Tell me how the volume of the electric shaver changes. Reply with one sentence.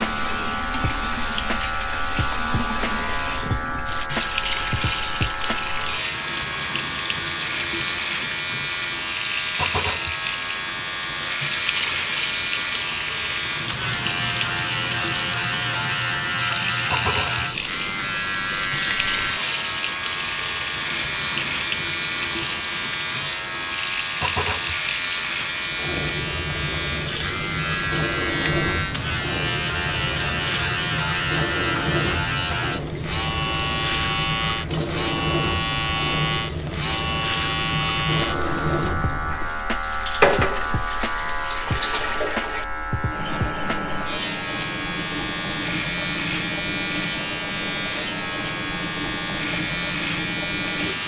The volume of the electric shaver stays about the same.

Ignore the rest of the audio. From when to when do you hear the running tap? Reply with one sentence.
You can hear the running tap from 0.0 to 51.0 s.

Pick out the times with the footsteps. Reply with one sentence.
You can't hear the footsteps here.